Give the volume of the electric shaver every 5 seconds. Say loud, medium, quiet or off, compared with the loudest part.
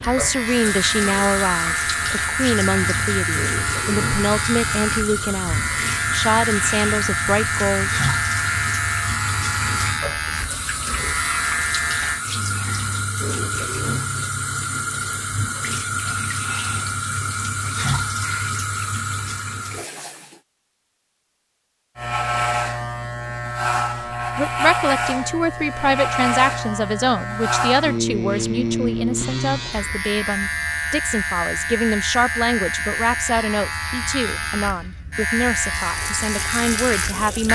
loud, loud, loud, off, loud, loud, loud, loud.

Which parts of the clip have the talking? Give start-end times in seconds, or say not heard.
0.0-7.9, 24.4-37.5.